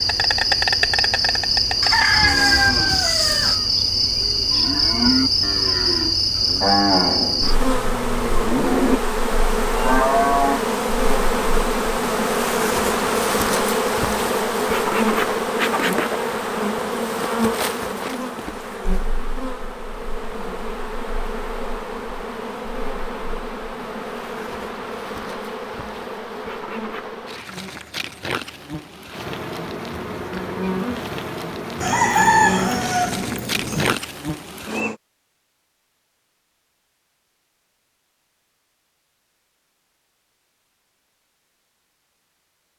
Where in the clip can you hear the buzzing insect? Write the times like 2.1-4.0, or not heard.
0.0-35.0.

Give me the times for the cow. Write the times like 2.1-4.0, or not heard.
2.1-10.6.